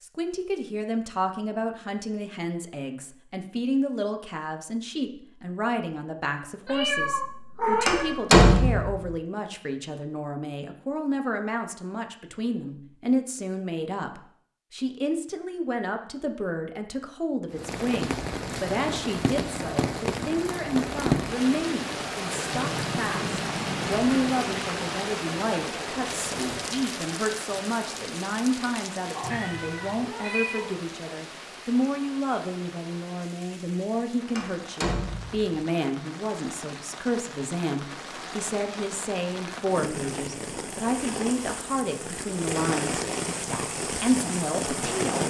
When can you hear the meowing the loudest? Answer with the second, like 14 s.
8 s.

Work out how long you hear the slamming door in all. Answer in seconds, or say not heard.
2 s.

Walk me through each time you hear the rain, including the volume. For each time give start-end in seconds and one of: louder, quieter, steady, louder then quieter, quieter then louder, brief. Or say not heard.
17.5-45.2 quieter then louder.